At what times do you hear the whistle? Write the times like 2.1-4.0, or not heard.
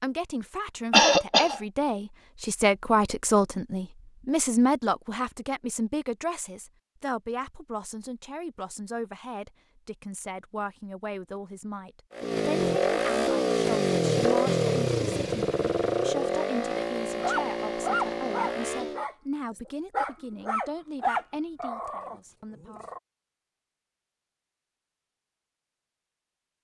not heard.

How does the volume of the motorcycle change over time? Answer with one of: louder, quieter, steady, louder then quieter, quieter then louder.
quieter.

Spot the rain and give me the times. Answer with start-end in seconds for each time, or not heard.
not heard.